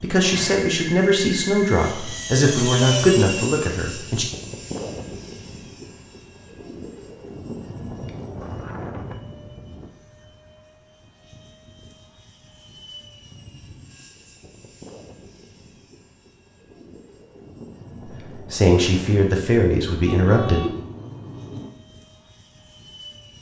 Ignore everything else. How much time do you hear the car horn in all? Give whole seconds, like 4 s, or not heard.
2 s.